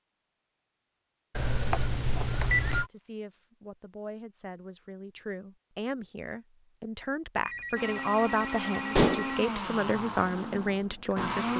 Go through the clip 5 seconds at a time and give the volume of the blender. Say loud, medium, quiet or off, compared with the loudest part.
off, loud, loud.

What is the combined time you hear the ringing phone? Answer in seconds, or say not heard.
4 s.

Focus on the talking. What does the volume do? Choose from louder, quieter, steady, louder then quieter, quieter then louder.
louder.